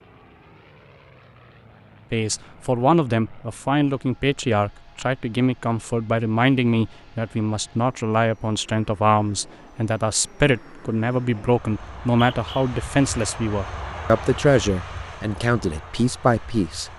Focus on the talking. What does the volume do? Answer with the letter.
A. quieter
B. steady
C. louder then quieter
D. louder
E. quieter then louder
B.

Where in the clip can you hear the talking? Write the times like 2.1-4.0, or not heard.
2.1-16.9.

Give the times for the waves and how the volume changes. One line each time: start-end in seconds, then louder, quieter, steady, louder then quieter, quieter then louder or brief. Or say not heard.
not heard.